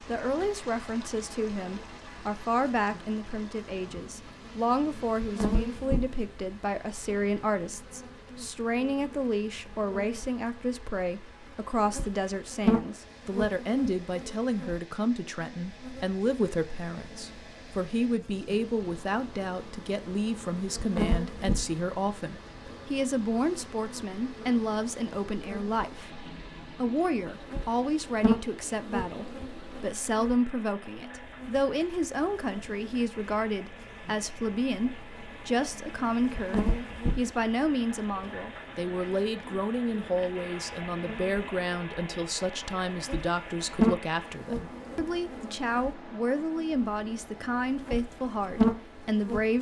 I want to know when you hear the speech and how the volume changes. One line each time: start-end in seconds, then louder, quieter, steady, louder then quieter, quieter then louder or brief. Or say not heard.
0.1-49.5 steady.